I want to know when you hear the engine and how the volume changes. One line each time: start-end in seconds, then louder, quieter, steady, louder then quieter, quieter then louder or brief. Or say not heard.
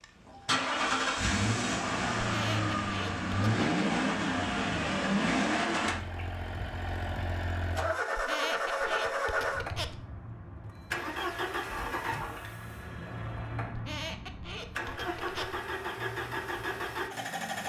0.0-17.6 quieter.